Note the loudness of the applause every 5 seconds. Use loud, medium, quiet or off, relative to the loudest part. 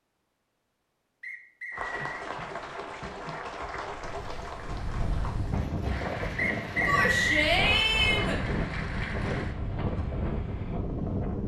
loud, loud, off.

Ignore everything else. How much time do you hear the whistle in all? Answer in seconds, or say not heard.
2 s.